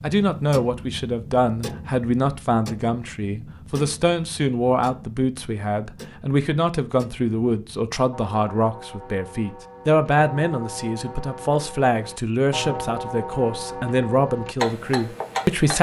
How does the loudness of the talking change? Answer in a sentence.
The volume of the talking stays about the same.